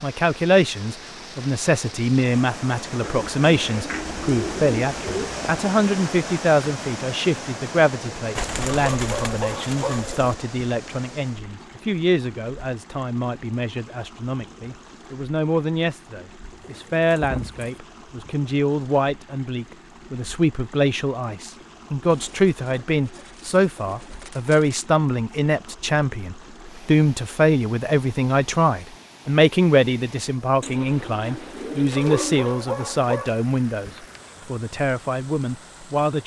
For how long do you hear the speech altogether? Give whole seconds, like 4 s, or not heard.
36 s.